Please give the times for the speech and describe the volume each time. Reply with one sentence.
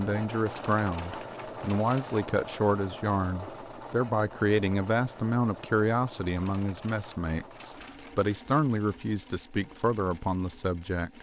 You can hear the speech from 0.0 to 11.1 s, at a steady volume.